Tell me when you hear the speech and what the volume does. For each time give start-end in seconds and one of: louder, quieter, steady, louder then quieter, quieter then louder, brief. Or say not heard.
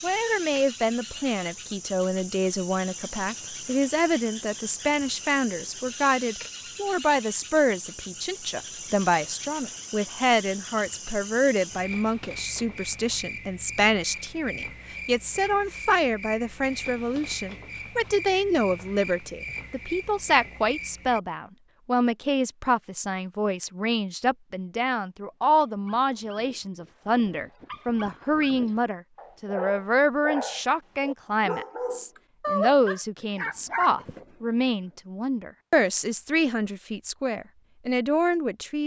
0.0-38.8 steady.